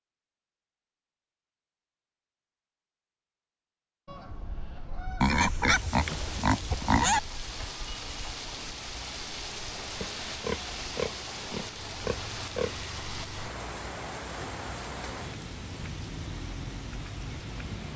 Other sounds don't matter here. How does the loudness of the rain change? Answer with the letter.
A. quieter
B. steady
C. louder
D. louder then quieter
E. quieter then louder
B.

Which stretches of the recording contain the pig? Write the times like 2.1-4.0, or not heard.
5.2-7.2, 10.0-12.8.